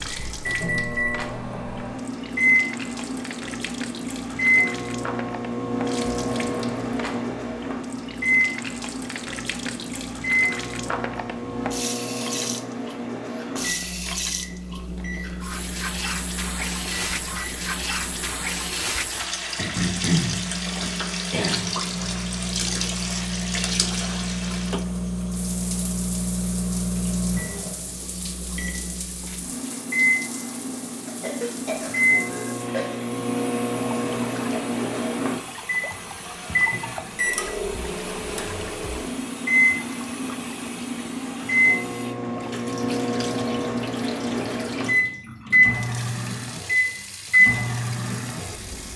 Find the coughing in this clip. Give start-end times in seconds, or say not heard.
19.6-21.7, 31.1-32.9.